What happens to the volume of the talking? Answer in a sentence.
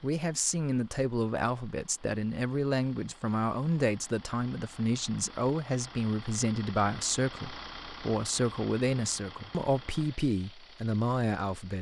The loudness of the talking stays about the same.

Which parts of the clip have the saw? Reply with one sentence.
You can't hear the saw here.